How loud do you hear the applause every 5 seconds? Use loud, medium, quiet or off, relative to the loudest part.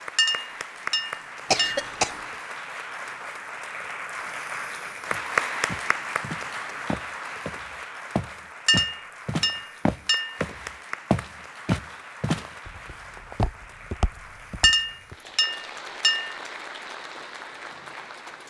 loud, loud, medium, medium.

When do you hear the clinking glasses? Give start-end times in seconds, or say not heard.
0.1-1.9, 8.7-10.4, 14.6-16.4.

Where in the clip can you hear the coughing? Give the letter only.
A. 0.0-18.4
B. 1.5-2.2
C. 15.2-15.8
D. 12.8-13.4
B.